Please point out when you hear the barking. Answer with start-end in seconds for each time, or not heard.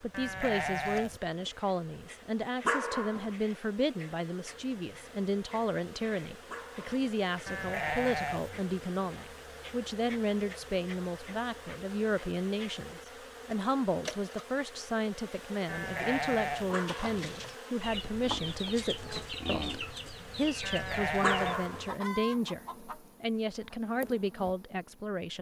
2.6-3.3, 6.5-7.0, 16.7-17.2, 21.2-21.9.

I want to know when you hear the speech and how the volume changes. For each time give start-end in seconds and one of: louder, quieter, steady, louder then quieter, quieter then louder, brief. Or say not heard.
0.0-25.3 steady.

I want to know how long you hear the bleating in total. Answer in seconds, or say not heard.
4 s.